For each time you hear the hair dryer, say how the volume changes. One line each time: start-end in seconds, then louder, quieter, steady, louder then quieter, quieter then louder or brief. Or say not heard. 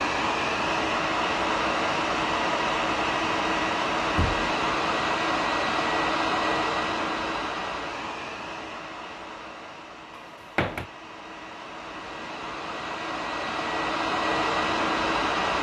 0.0-15.5 quieter then louder.